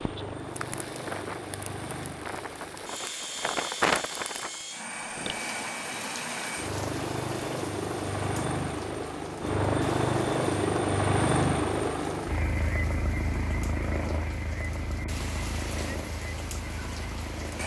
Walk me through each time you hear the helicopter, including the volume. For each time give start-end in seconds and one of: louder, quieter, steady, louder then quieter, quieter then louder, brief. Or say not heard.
0.0-17.6 louder then quieter.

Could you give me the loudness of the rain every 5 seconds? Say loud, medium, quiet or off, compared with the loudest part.
loud, medium, quiet, medium.